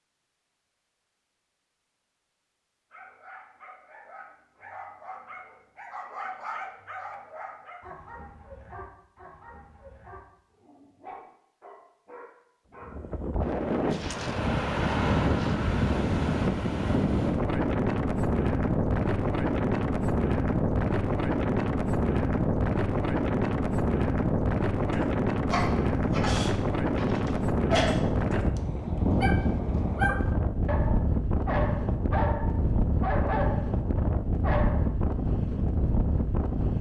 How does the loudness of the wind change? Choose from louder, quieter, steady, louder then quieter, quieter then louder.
steady.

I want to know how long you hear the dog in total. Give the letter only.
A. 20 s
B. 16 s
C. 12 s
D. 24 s
A.